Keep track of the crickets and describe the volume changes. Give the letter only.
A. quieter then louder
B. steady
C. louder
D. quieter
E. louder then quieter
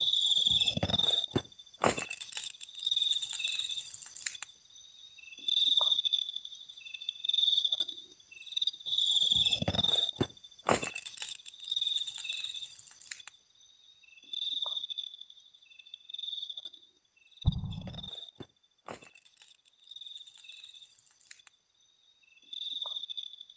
D.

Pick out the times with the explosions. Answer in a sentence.
The explosions can be heard from 17.4 to 18.1 s.